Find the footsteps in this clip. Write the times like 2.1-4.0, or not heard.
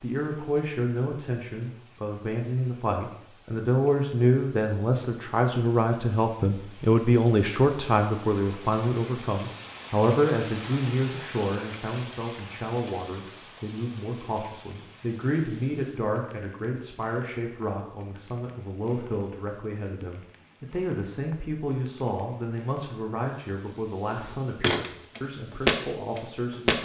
24.1-26.7.